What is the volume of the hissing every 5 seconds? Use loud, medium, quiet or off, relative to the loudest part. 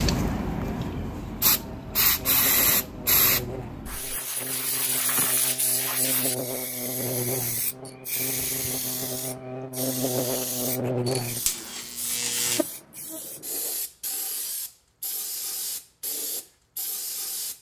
loud, medium, medium, medium.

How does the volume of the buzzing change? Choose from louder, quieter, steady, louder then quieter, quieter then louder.
louder.